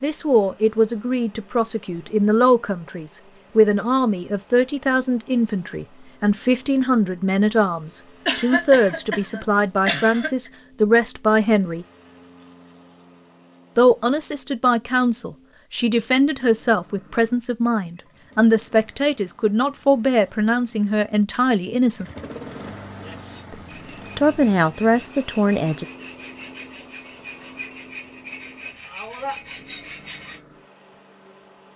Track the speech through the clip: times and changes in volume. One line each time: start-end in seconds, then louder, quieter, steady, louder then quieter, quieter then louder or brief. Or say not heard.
0.0-11.8 steady
13.8-22.1 steady
23.5-25.9 brief.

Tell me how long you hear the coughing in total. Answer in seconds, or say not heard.
2 s.